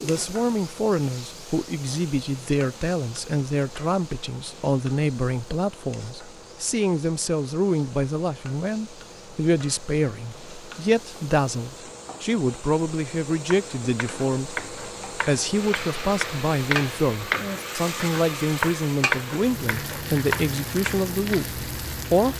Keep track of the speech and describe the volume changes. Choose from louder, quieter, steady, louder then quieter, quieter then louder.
steady.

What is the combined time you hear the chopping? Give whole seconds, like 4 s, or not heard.
8 s.